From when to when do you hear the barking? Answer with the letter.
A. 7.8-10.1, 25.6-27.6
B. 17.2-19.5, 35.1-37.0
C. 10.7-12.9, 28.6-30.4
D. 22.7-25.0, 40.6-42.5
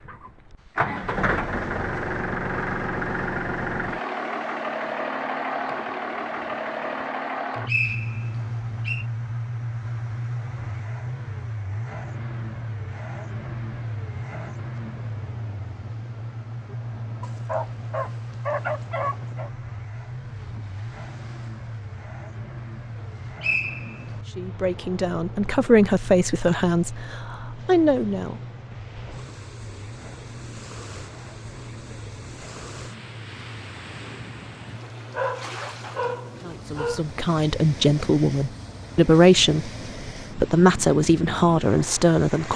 B.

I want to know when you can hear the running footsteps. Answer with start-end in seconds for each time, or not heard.
not heard.